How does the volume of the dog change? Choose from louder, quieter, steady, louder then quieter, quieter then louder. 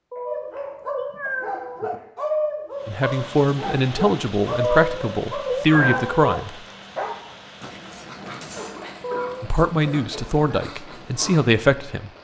quieter.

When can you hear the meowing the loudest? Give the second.
6 s.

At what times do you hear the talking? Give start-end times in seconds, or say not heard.
2.9-6.5, 9.4-12.1.